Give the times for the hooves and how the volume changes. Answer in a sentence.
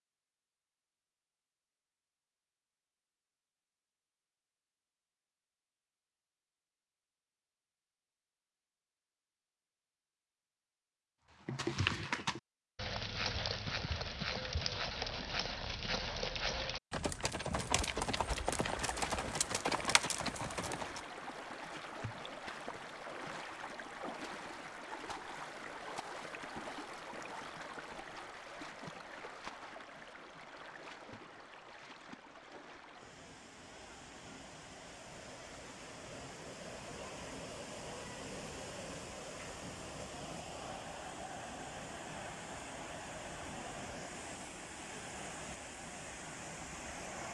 The hooves can be heard from 11.4 to 21.0 s, at a steady volume.